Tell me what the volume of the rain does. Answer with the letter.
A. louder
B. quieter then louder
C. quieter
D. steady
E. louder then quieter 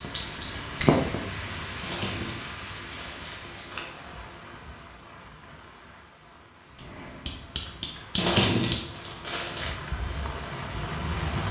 B.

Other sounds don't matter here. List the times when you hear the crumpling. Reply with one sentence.
The crumpling can be heard from 1.8 to 3.9 s and from 8.2 to 9.8 s.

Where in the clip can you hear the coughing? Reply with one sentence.
The coughing can't be heard in this clip.